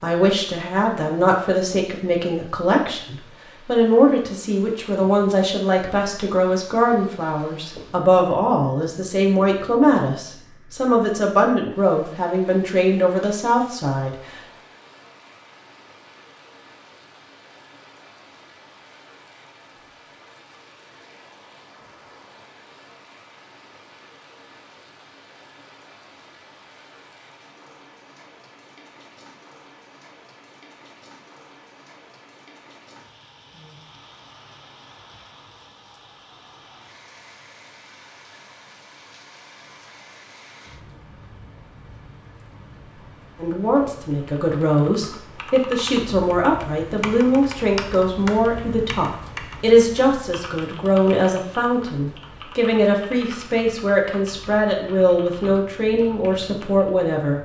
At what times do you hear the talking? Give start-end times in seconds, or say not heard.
0.0-14.4, 43.4-57.4.